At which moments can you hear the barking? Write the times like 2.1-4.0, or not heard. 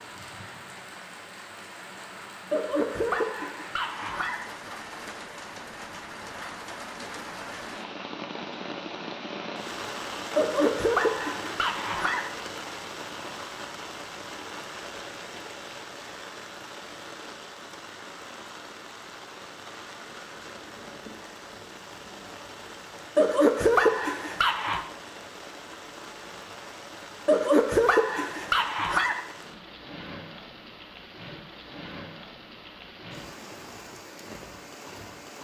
2.5-4.5, 10.3-12.3, 23.1-24.8, 27.2-29.2.